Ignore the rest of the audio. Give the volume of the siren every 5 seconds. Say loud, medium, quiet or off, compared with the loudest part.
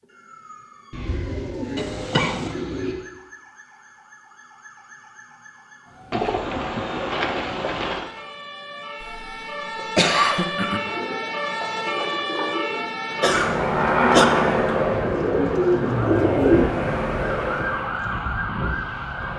quiet, medium, loud, loud.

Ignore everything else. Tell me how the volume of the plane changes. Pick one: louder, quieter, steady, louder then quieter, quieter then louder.
quieter then louder.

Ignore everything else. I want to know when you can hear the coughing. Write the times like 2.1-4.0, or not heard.
1.8-2.5, 9.0-10.8, 13.2-14.2.